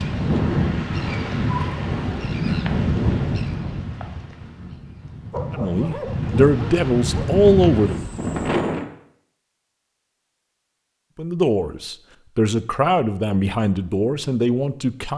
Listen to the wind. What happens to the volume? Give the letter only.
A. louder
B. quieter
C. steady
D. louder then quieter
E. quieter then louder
E.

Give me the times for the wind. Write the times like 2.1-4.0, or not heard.
0.0-8.8.